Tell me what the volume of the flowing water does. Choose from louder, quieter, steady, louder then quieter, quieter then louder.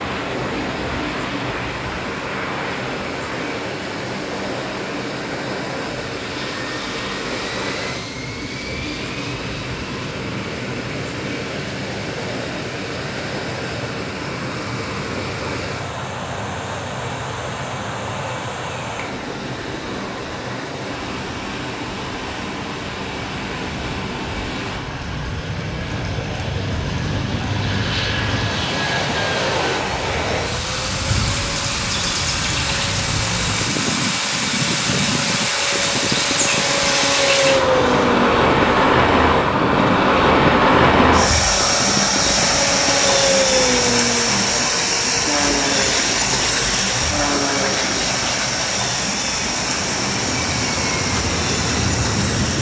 louder.